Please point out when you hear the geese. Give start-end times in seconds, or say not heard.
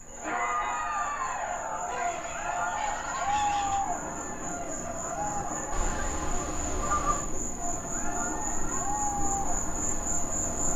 1.9-3.8, 5.7-7.2.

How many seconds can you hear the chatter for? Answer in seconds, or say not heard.
11 s.